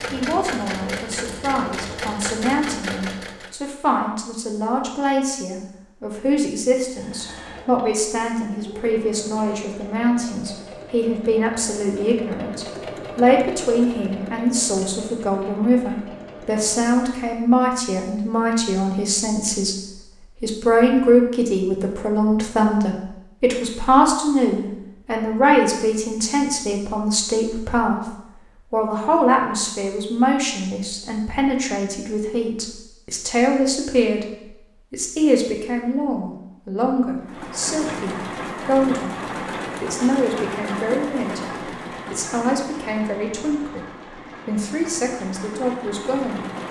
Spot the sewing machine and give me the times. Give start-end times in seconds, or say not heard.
0.0-3.5, 6.8-17.3, 37.2-46.6.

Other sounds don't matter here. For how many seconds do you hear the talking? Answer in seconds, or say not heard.
46 s.